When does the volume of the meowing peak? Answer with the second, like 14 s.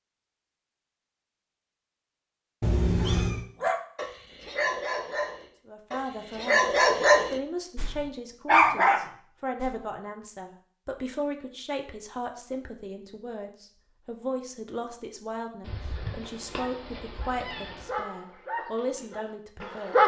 3 s.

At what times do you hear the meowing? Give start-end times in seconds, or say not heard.
2.6-3.5, 15.6-17.9.